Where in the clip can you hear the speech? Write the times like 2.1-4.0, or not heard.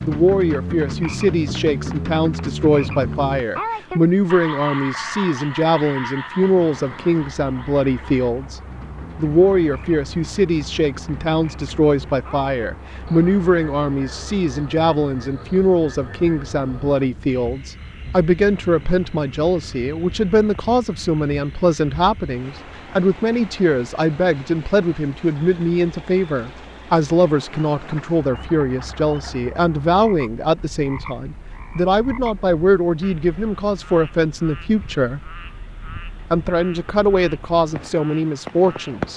0.0-35.3, 36.3-39.1.